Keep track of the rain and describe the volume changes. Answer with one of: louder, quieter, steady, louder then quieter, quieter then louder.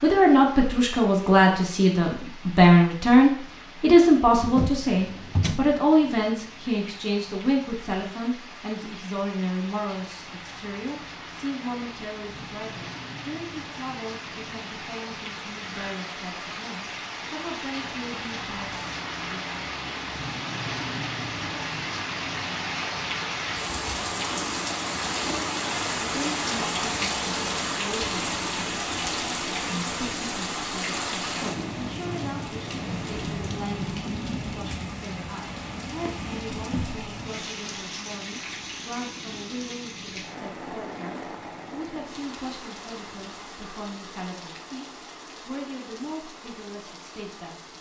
louder then quieter.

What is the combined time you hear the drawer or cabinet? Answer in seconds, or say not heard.
2 s.